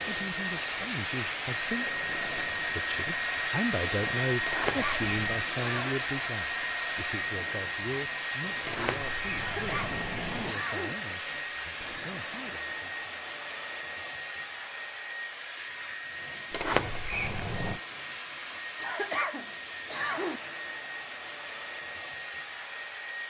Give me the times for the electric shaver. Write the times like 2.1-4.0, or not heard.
not heard.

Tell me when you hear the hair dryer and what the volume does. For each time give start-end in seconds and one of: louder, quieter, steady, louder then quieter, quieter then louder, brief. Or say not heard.
0.0-23.2 quieter.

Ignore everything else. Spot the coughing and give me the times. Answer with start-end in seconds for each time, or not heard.
4.7-6.0, 9.3-10.9, 18.8-20.4.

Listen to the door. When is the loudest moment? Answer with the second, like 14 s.
17 s.